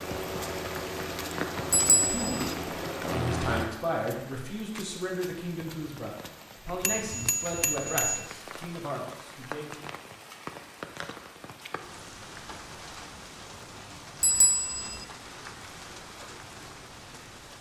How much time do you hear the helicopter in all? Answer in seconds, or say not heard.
4 s.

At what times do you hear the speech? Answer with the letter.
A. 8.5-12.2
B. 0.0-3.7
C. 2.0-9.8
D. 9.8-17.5
C.